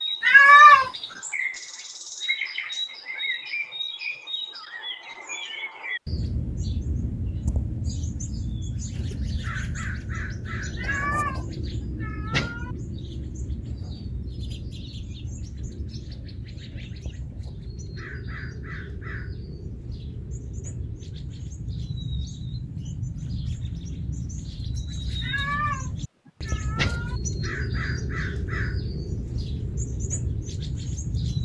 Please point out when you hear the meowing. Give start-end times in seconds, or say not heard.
0.2-0.9, 10.8-11.4, 12.0-12.7, 25.2-25.9, 26.4-27.1.